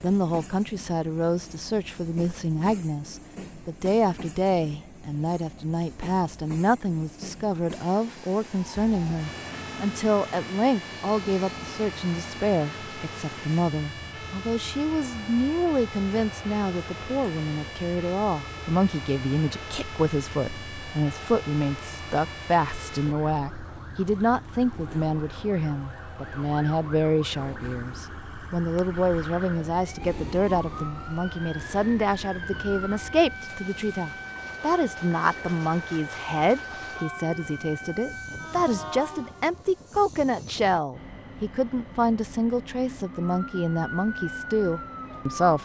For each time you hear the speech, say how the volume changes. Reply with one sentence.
You can hear the speech from 0.0 to 45.6 s, at a steady volume.